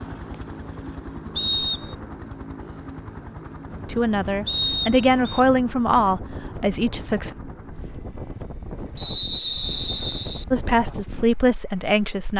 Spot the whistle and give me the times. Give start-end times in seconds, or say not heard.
1.4-1.9, 4.5-5.4, 8.9-10.4.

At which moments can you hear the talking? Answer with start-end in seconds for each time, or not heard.
3.9-7.3, 10.5-12.3.